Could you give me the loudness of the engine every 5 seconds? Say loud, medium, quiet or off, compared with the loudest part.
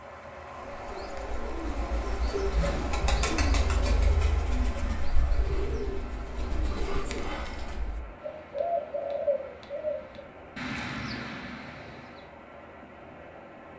loud, medium, medium.